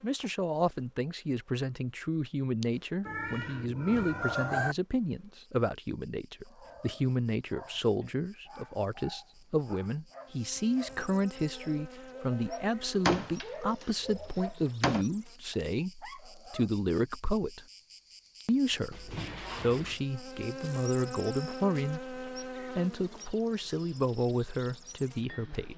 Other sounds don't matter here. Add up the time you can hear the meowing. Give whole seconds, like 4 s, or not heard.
3 s.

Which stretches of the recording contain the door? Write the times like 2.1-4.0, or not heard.
13.1-15.1.